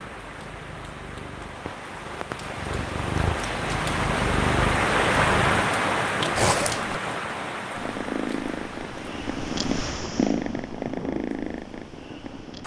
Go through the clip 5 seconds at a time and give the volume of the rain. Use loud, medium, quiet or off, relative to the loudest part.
loud, loud, quiet.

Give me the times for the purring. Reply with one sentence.
The purring can be heard from 0.2 to 5.7 s and from 7.8 to 12.6 s.